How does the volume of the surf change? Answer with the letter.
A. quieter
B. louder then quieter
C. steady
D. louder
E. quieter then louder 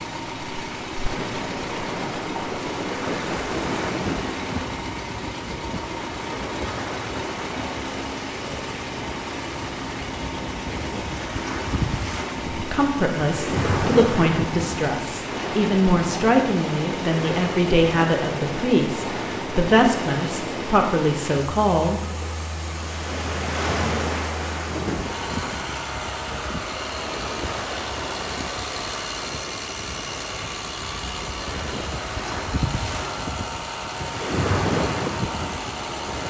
C.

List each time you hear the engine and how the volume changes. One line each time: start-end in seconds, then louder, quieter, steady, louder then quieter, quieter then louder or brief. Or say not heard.
0.0-36.2 steady.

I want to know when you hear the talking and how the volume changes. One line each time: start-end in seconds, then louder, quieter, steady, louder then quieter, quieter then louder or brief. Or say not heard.
12.5-22.0 steady.